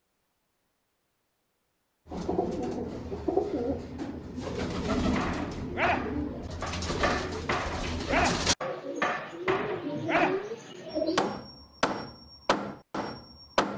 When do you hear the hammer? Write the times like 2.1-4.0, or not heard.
5.2-13.7.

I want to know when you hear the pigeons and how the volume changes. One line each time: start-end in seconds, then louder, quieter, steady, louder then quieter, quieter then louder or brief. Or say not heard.
2.0-11.3 steady.